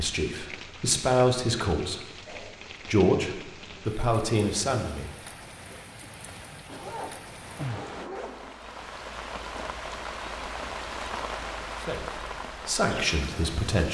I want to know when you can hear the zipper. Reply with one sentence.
The zipper can be heard from 6.7 to 8.6 s.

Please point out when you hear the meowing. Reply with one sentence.
You can't hear the meowing here.